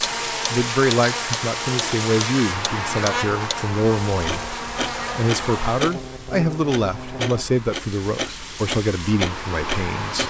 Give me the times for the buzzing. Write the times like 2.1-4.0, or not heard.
0.0-7.5.